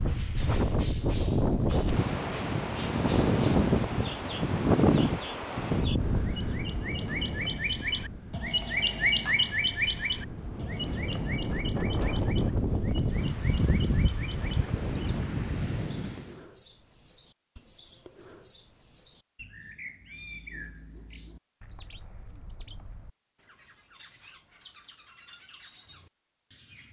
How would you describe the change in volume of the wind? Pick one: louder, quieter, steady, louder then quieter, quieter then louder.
quieter then louder.